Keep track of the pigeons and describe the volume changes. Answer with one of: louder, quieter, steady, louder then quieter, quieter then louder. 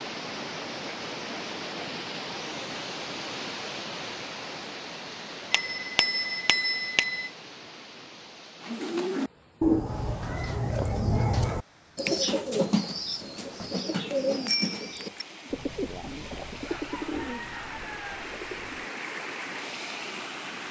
quieter.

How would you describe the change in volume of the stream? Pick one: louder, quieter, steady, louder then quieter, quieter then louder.
quieter then louder.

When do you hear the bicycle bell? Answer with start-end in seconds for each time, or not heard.
5.5-7.3, 14.4-15.2.